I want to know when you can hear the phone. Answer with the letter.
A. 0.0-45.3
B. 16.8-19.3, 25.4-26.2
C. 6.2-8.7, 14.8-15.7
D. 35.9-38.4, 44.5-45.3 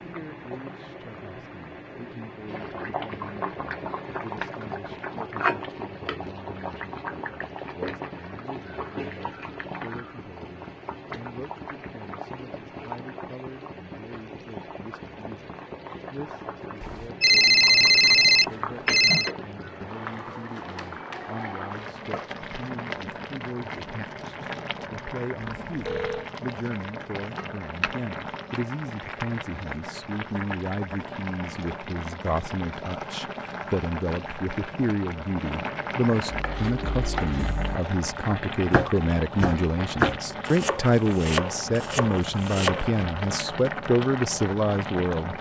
B.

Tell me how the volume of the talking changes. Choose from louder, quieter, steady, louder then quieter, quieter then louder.
louder.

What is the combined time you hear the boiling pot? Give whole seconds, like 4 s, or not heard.
45 s.